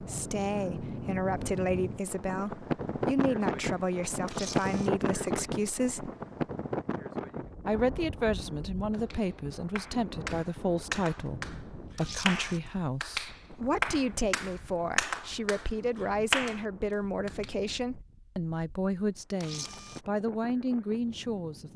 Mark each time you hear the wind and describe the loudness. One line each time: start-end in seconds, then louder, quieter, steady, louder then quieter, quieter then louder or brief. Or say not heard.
0.0-21.7 quieter.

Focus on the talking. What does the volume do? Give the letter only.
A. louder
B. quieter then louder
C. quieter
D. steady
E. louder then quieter
D.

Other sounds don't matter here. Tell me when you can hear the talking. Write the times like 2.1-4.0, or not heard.
0.0-6.1, 7.7-21.7.